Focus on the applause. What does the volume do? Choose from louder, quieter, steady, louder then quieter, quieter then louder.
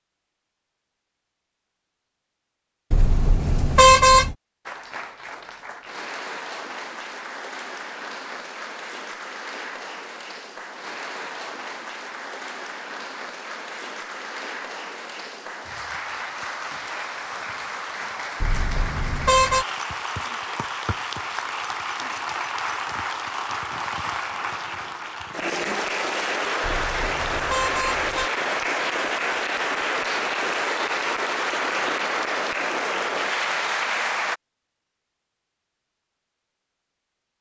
louder.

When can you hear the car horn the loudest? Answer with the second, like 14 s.
4 s.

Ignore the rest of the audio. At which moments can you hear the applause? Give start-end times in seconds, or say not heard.
4.7-34.4.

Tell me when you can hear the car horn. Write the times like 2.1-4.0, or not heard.
2.9-4.3, 18.4-19.6, 26.6-28.3.